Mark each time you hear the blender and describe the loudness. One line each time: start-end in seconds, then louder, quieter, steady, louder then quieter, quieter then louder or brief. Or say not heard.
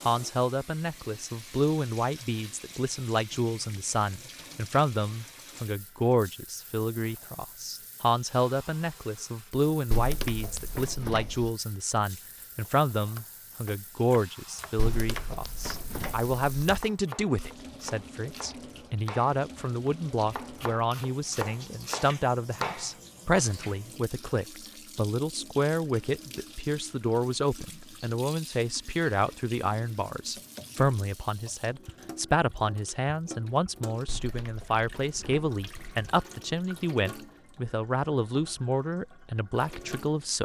not heard.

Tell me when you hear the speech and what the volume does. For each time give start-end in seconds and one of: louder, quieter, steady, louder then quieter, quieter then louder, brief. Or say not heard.
0.1-40.4 steady.